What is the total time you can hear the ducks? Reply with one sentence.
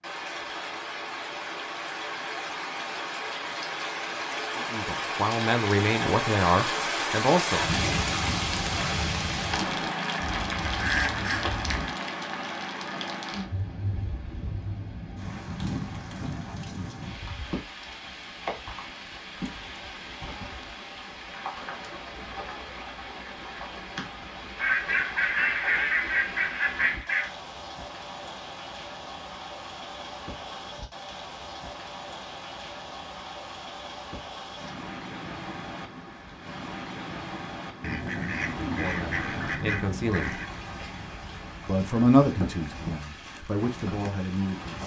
You can hear the ducks for 7 seconds altogether.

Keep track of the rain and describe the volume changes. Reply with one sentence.
The loudness of the rain goes down.